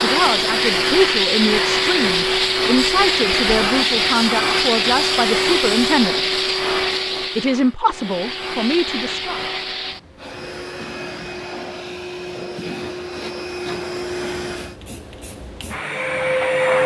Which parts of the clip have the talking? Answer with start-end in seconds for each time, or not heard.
0.0-6.3, 7.3-9.4.